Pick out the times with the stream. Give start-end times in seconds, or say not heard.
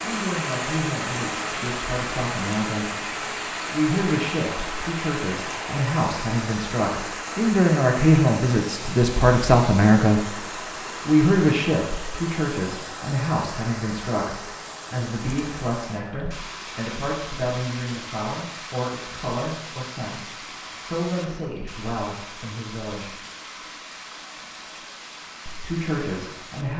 0.0-26.7.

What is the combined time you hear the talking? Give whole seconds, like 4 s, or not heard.
23 s.